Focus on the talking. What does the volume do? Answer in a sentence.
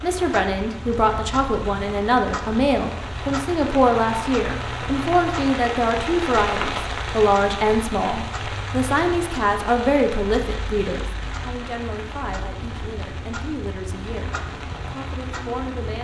The loudness of the talking goes down.